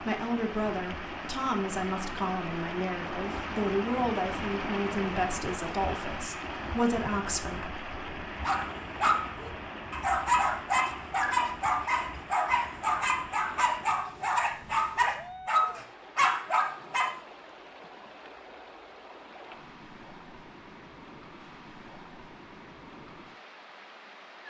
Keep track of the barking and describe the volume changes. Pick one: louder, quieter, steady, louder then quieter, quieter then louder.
steady.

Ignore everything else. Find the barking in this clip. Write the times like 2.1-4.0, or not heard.
8.4-17.2.